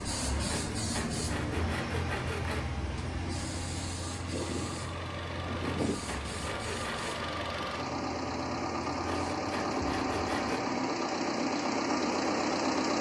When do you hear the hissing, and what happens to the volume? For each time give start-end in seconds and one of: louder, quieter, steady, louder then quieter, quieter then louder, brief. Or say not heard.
0.0-9.2 quieter.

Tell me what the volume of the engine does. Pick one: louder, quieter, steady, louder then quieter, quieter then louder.
louder.